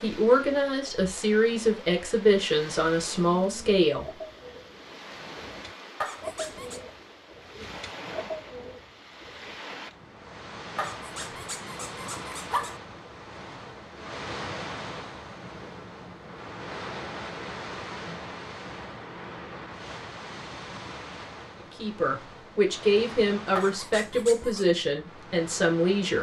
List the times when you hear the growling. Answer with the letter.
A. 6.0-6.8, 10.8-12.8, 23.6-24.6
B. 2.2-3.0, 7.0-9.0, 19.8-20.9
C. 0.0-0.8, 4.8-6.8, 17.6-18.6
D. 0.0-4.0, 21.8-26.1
A.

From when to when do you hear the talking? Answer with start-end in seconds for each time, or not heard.
0.0-4.0, 21.8-26.1.